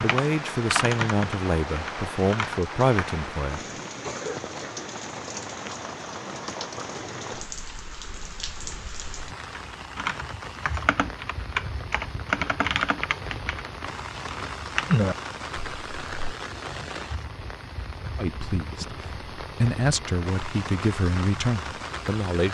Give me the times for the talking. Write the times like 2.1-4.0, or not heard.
0.0-3.6, 18.1-22.4.